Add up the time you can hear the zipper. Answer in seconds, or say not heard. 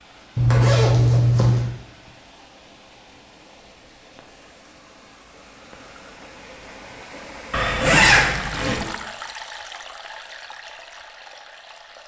3 s.